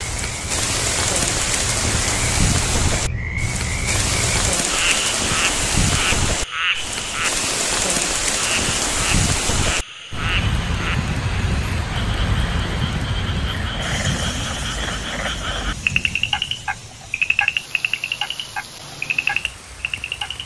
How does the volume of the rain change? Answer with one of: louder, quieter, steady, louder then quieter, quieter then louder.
quieter.